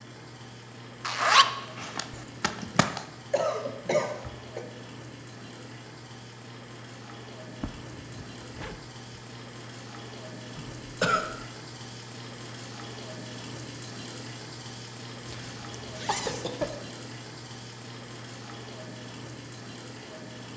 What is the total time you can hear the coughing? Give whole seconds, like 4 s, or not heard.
4 s.